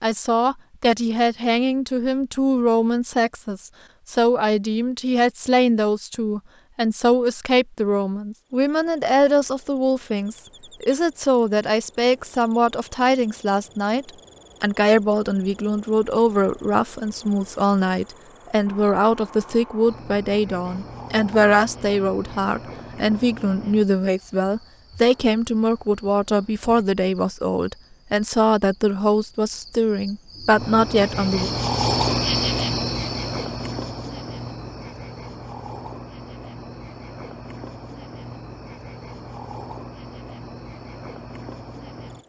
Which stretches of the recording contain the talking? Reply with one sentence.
You can hear the talking from 0.0 to 31.5 s.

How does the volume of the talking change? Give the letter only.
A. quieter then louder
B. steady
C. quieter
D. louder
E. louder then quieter
B.